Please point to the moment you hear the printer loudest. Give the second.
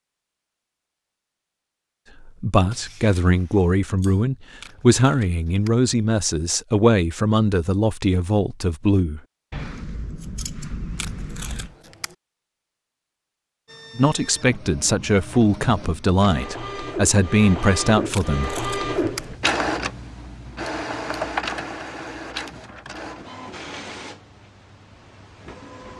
19 s.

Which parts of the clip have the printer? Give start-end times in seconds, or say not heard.
13.7-25.9.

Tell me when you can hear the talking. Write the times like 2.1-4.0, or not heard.
2.2-9.2, 13.9-18.6.